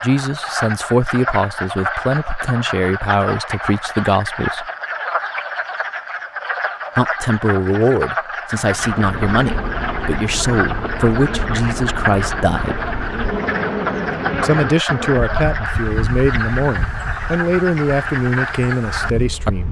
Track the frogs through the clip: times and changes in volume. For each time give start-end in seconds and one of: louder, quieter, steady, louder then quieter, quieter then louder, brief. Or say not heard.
0.0-19.5 steady.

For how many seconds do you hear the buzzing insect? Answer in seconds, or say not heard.
11 s.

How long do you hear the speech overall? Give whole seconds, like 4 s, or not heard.
16 s.